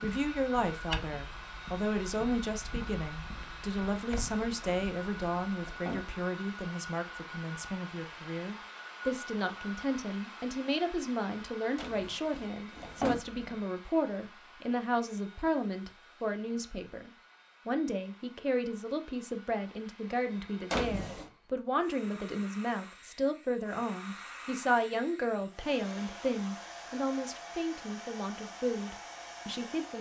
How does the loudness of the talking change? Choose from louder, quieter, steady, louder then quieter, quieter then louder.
steady.